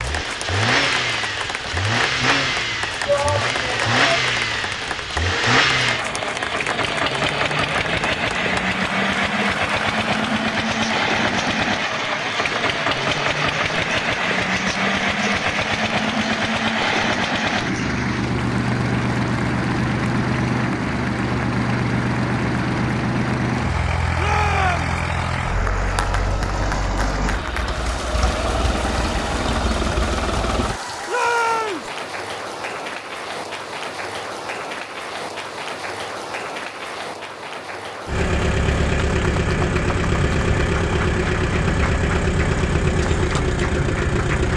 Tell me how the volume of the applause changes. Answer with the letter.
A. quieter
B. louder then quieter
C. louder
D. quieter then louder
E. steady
E.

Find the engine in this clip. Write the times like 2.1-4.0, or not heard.
0.0-30.8, 38.0-44.5.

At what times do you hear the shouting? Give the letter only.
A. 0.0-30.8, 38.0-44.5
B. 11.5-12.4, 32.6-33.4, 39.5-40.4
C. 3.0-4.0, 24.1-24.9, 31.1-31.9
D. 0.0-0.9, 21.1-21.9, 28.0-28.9
C.